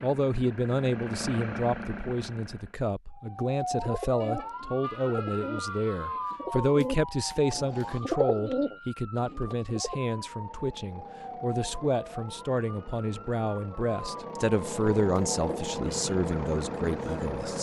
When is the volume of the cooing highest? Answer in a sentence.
The volume of the cooing peaks at 8 seconds.